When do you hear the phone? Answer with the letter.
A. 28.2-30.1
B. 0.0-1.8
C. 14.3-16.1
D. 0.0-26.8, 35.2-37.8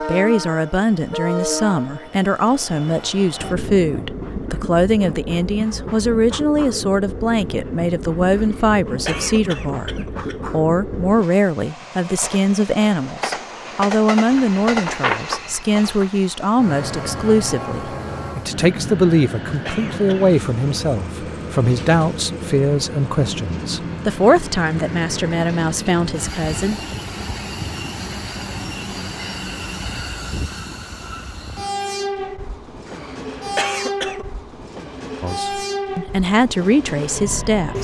C.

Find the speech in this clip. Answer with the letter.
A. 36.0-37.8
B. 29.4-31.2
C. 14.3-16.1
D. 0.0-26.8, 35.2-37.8
D.